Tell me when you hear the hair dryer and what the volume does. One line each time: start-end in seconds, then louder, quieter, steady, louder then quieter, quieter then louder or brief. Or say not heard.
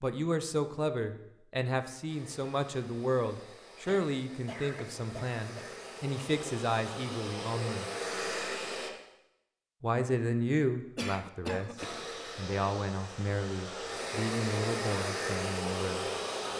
2.0-8.9 louder
11.8-16.5 louder.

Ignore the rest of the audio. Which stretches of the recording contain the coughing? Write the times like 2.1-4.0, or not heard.
3.9-5.7, 10.9-12.1.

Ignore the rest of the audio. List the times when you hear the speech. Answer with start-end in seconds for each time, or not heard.
0.0-7.9, 9.8-11.8, 12.3-16.1.